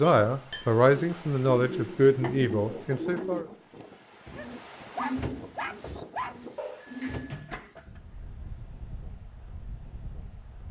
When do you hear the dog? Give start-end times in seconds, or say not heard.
4.3-6.3.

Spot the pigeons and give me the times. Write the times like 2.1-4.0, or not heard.
0.8-7.8.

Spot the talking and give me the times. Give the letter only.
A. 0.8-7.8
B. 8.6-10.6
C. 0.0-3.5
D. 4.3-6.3
C.